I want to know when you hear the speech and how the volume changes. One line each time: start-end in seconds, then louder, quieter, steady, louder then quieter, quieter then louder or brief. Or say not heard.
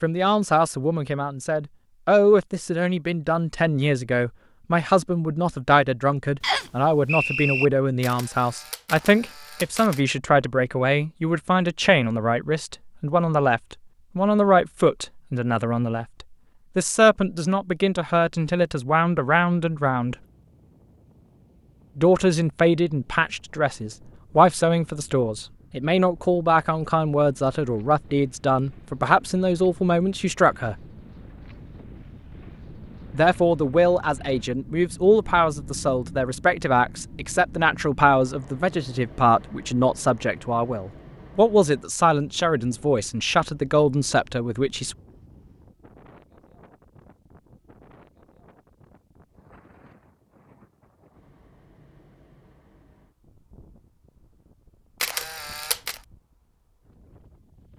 0.0-20.1 steady
21.9-30.8 steady
33.1-45.0 steady.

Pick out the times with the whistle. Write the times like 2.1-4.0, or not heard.
6.4-7.7.